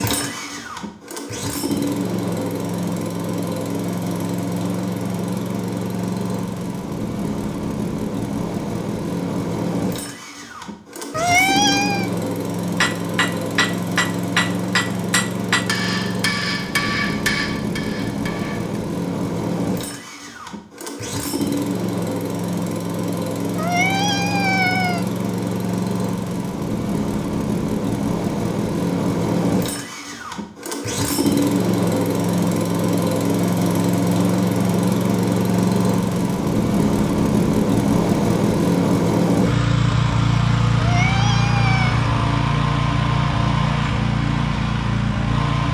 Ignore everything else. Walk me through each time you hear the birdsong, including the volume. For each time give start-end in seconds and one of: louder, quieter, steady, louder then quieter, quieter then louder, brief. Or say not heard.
not heard.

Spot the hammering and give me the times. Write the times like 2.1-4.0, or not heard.
12.8-18.8.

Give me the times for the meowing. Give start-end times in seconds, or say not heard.
11.1-12.1, 23.6-25.1, 40.8-42.0.